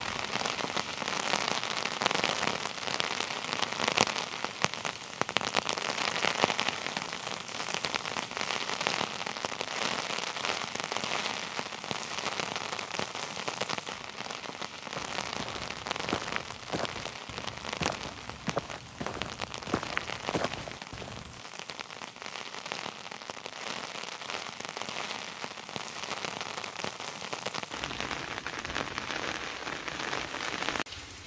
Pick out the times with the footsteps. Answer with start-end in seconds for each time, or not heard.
14.9-21.4.